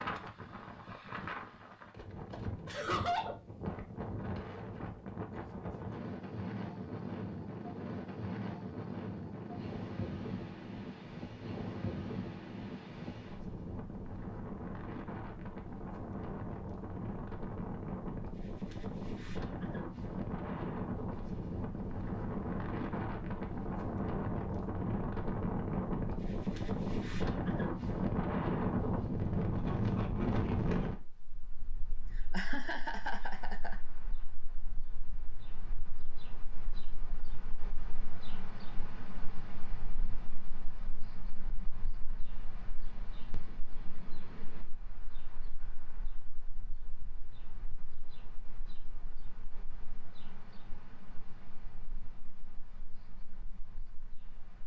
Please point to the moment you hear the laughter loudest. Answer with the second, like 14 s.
3 s.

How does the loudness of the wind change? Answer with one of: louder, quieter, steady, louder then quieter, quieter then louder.
louder then quieter.